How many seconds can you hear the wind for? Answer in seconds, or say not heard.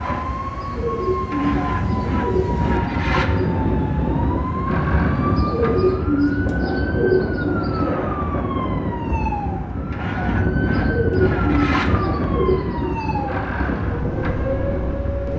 15 s.